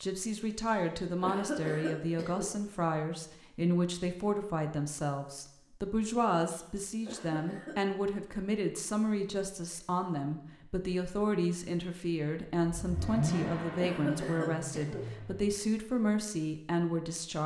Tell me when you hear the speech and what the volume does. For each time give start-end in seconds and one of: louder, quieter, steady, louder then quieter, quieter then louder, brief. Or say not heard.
0.0-17.4 steady.